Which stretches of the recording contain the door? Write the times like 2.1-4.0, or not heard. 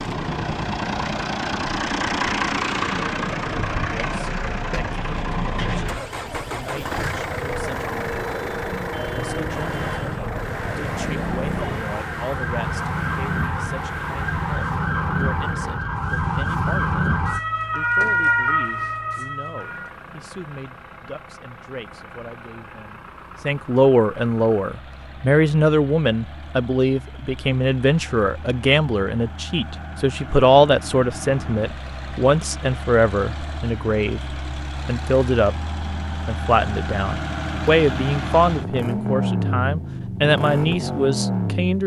not heard.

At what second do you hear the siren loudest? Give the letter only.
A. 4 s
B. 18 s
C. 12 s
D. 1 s
B.